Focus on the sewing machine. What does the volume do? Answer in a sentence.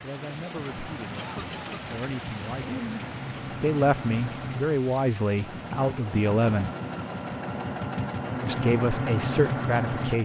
The volume of the sewing machine goes up.